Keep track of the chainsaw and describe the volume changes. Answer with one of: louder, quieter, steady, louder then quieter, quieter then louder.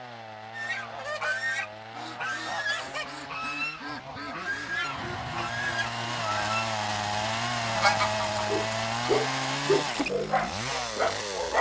louder.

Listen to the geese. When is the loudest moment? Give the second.
8 s.